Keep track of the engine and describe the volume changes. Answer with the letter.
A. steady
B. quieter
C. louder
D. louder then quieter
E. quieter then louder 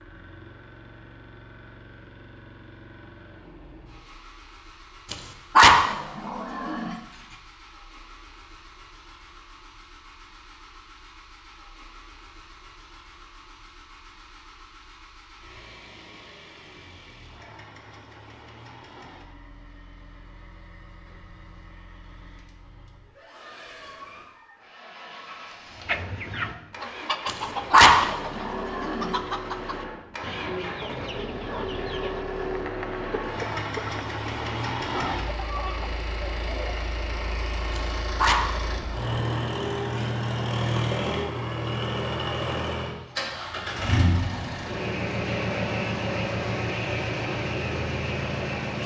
C.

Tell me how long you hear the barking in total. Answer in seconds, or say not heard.
6 s.